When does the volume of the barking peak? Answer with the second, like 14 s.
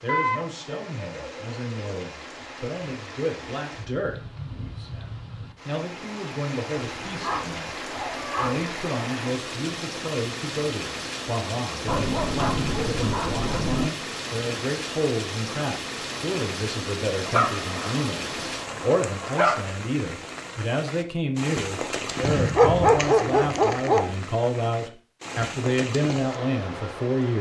23 s.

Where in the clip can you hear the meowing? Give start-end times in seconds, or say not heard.
not heard.